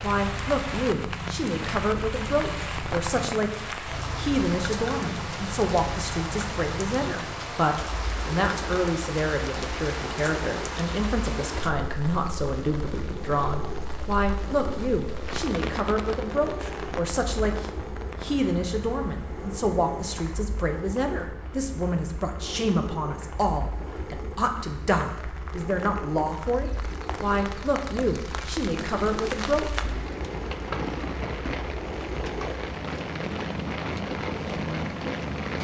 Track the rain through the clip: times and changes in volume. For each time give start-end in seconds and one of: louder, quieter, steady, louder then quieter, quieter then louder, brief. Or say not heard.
0.0-35.5 quieter then louder.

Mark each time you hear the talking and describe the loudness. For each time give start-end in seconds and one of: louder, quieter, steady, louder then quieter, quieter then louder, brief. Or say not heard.
0.0-29.9 steady.